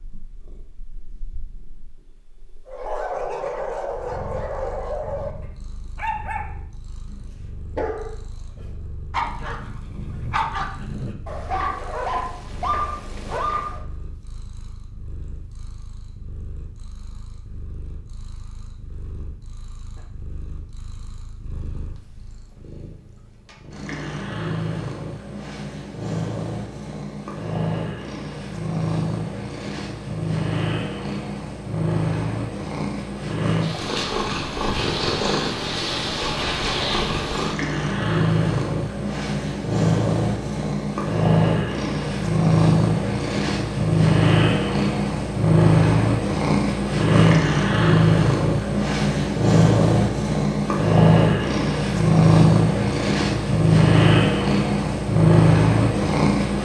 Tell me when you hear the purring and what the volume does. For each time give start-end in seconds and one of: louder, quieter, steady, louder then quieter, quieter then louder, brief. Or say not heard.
0.0-56.6 louder.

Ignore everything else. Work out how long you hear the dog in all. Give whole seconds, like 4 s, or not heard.
11 s.